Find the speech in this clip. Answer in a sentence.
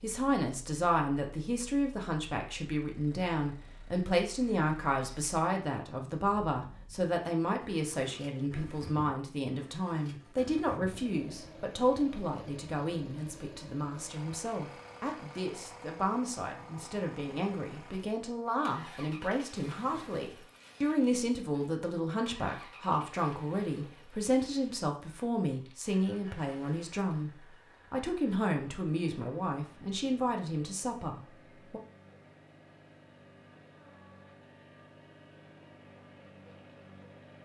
The speech can be heard from 0.0 to 31.8 s.